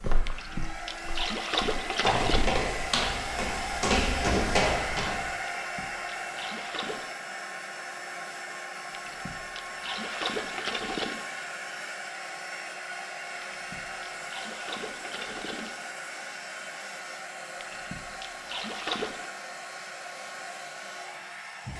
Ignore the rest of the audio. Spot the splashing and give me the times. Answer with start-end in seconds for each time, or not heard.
0.2-2.5, 5.5-7.2, 8.9-11.2, 13.4-15.8, 17.6-19.3.